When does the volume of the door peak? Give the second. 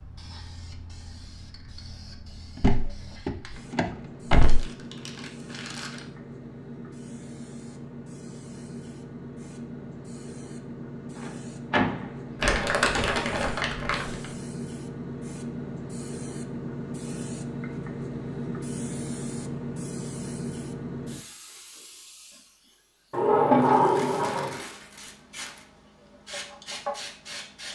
24 s.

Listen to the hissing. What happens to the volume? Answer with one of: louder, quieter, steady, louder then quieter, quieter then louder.
louder then quieter.